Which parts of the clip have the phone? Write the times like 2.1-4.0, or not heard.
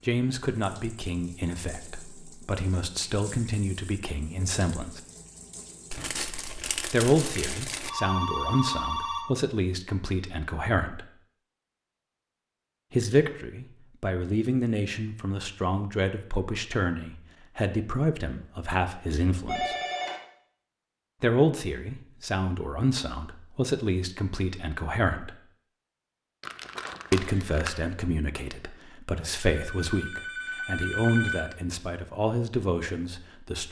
7.8-9.2, 19.4-20.2, 29.5-31.4.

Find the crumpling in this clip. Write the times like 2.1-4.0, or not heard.
5.9-7.9, 26.4-27.8.